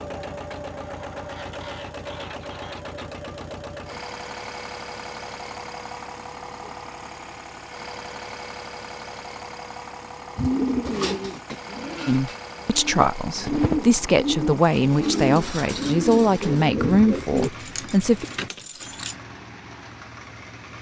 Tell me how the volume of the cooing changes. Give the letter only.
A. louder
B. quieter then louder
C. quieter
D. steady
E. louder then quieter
B.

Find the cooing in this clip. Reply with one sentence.
The cooing can be heard from 10.3 to 17.5 s.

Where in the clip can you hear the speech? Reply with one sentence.
You can hear the speech from 12.1 to 18.2 s.